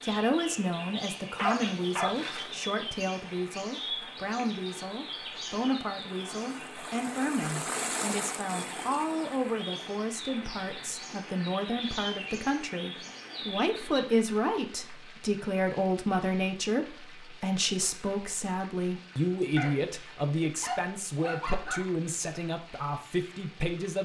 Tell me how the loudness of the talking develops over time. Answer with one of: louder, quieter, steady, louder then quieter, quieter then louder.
steady.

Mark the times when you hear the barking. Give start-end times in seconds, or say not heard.
1.4-2.5, 19.6-21.9.